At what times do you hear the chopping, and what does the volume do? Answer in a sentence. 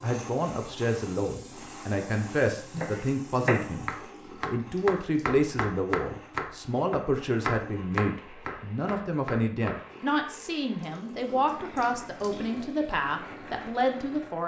You can hear the chopping from 2.7 to 9.8 s, getting quieter.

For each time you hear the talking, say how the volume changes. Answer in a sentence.
The talking can be heard from 0.0 to 14.4 s, at a steady volume.